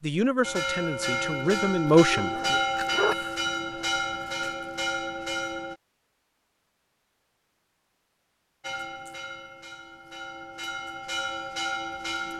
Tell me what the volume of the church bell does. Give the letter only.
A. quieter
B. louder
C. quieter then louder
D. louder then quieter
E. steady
C.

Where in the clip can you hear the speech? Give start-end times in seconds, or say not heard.
0.0-2.5.